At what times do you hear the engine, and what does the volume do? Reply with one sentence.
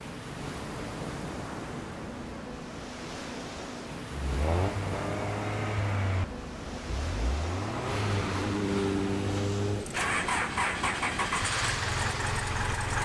The engine can be heard from 4.2 to 12.9 s, getting quieter then louder.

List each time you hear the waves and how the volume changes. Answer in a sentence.
You can hear the waves from 0.0 to 12.9 s, at a steady volume.